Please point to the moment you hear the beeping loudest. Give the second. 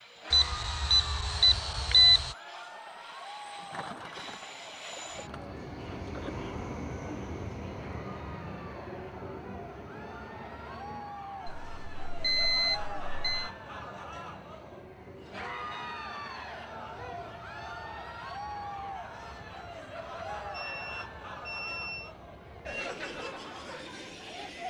2 s.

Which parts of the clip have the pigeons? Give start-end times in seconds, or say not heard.
3.4-6.4.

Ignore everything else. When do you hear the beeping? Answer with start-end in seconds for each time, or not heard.
0.3-2.4, 11.4-13.5, 20.5-22.1.